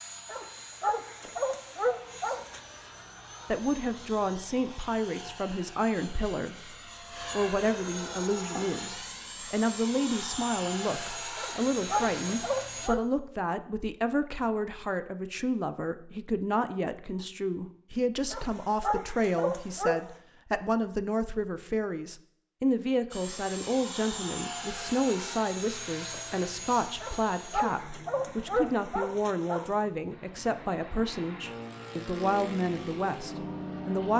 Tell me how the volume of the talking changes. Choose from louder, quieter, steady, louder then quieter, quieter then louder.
steady.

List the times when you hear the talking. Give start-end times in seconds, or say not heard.
3.5-34.1.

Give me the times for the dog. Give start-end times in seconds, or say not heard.
0.2-2.6, 11.3-13.0, 18.3-20.1, 27.0-29.8.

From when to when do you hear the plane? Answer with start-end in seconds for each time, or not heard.
0.0-12.9, 23.1-34.1.